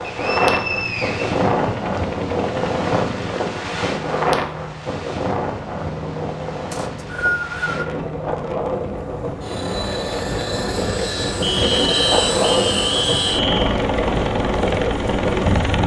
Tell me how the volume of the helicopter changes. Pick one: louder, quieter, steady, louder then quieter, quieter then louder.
louder.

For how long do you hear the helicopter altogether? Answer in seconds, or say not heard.
16 s.